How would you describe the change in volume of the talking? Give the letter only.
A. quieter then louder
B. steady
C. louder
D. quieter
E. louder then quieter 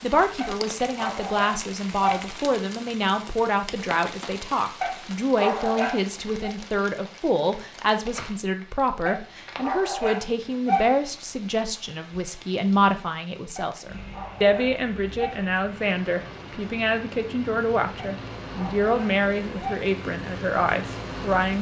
B.